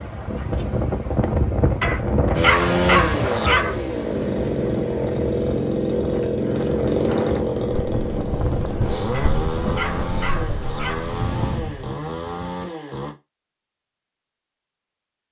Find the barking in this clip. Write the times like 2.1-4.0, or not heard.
1.8-3.8, 9.1-11.1.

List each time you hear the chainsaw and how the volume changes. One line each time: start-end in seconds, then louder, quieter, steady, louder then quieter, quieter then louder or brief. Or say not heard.
2.3-13.2 quieter.